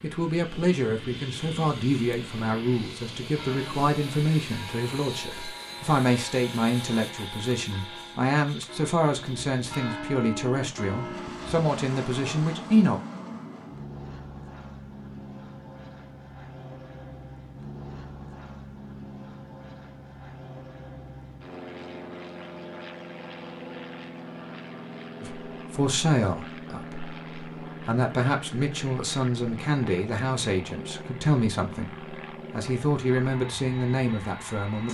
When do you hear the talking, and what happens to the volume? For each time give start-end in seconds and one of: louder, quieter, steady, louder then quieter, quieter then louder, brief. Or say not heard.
0.0-13.0 steady
25.2-34.8 steady.